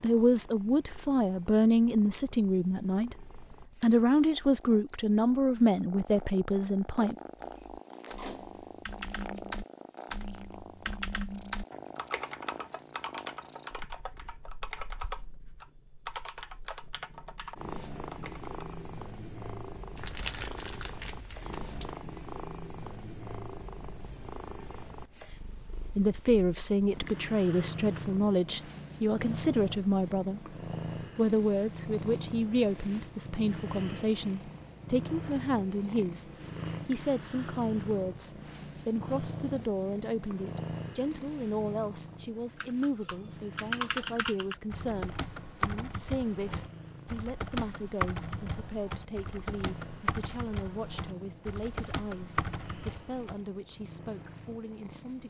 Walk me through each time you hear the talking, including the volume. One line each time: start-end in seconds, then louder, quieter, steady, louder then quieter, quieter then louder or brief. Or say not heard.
0.0-7.2 steady
25.9-55.2 quieter.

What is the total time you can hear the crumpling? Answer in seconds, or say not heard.
2 s.